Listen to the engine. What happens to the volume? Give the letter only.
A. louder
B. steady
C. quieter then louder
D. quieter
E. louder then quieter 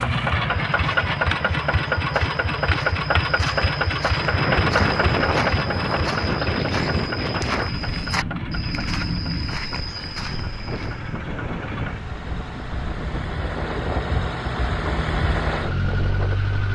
C.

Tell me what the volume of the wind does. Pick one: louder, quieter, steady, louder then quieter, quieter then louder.
quieter.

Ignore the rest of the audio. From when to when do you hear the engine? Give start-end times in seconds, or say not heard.
0.0-16.7.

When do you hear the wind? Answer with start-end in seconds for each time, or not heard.
4.0-16.7.